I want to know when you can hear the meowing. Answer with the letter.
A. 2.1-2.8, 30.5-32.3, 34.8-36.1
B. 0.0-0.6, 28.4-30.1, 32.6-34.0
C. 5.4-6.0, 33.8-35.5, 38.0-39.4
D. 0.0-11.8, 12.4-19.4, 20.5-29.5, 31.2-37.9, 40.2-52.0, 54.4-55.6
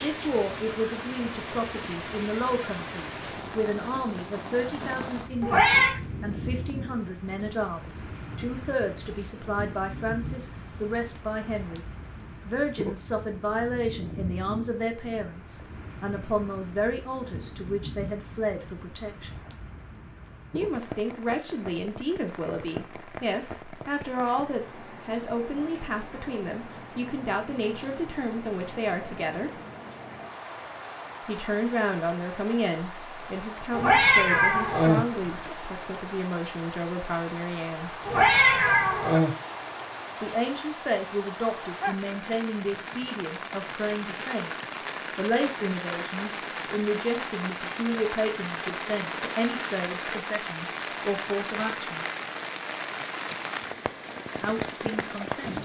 C.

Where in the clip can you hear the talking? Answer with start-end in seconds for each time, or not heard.
0.0-11.8, 12.4-19.4, 20.5-29.5, 31.2-37.9, 40.2-52.0, 54.4-55.6.